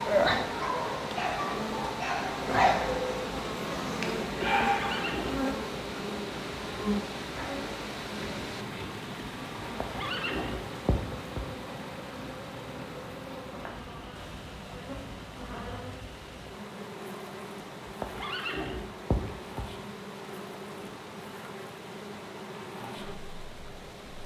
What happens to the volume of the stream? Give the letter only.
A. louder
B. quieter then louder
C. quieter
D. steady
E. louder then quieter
C.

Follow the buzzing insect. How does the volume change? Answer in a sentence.
The volume of the buzzing insect goes down.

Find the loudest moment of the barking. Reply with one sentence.
The volume of the barking peaks at 5 seconds.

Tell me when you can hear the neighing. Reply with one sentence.
The neighing can be heard from 4.7 to 5.5 s, from 9.6 to 11.4 s and from 17.9 to 19.6 s.